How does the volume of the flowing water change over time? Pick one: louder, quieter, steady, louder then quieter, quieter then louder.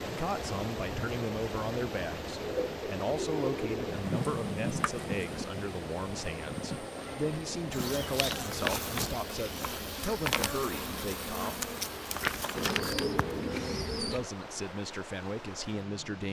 quieter.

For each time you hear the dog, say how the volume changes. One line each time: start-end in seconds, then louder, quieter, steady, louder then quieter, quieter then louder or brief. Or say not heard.
not heard.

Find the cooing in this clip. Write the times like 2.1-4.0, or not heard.
2.4-4.0, 12.6-14.3.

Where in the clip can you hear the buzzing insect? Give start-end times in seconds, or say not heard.
3.9-13.2.